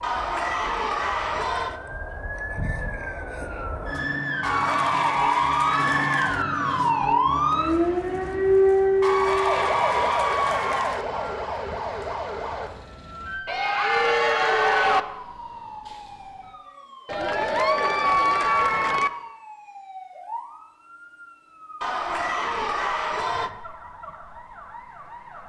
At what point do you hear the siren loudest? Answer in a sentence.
The volume of the siren peaks at 9 seconds.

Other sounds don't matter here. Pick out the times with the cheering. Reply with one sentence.
The cheering can be heard from 0.0 to 1.8 s, from 4.4 to 6.5 s, from 9.0 to 11.1 s, from 13.4 to 15.1 s, from 17.1 to 19.1 s and from 21.8 to 23.5 s.